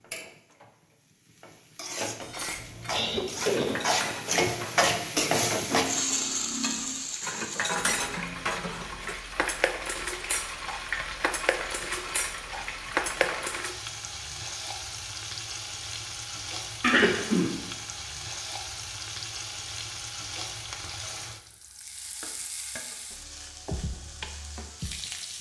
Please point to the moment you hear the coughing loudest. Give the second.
17 s.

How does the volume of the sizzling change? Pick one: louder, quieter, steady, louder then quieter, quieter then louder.
quieter.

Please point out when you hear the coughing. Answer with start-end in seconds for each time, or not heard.
2.5-3.9, 16.8-17.7.